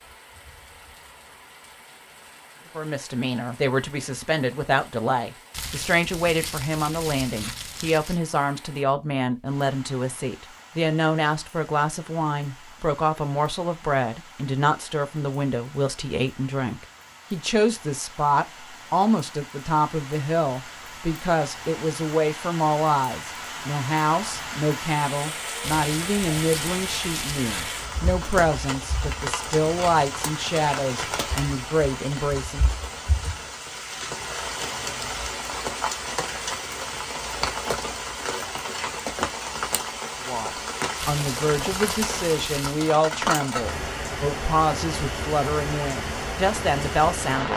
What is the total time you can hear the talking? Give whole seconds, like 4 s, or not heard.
37 s.